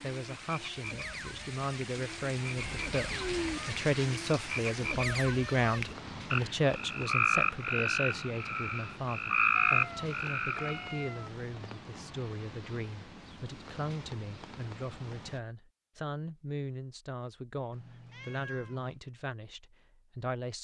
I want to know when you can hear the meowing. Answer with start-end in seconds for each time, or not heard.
2.5-3.6, 9.6-11.3, 17.7-18.9.